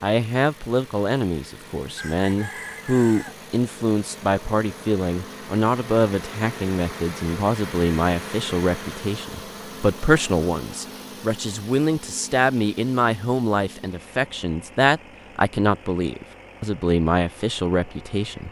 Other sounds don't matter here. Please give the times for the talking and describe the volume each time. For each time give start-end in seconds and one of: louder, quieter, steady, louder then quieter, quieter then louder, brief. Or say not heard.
0.0-18.4 steady.